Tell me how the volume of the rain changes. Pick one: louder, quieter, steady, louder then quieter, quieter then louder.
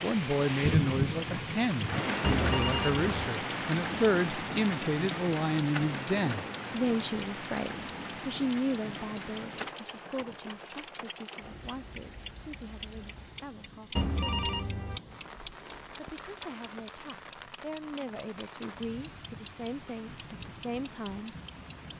quieter.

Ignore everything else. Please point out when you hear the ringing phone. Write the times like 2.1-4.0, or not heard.
2.2-3.0, 13.9-15.0.